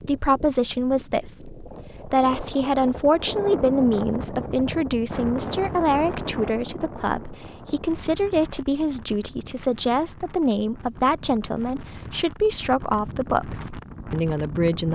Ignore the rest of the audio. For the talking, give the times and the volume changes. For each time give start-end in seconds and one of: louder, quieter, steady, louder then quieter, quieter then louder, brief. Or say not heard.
0.0-14.8 steady.